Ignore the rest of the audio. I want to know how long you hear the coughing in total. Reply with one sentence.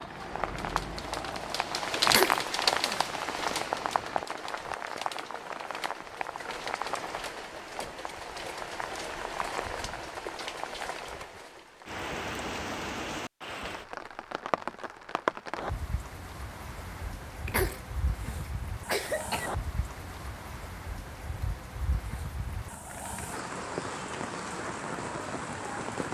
You can hear the coughing for 3 seconds altogether.